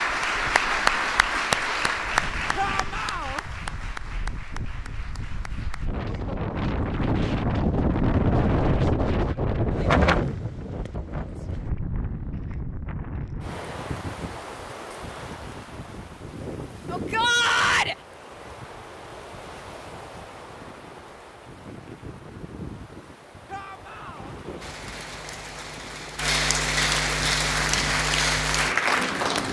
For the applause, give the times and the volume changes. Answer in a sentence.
You can hear the applause from 0.0 to 5.9 s, getting quieter; and from 24.6 to 29.4 s, getting louder.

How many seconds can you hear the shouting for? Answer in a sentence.
The shouting can be heard for 3 seconds in total.